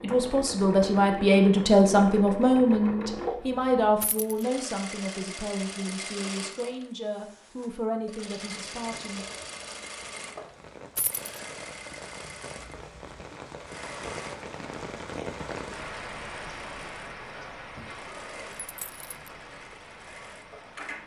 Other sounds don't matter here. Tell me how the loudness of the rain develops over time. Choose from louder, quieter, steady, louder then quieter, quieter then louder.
louder then quieter.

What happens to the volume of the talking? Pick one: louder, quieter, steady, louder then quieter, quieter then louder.
quieter.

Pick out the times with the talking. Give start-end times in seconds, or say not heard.
0.0-9.2.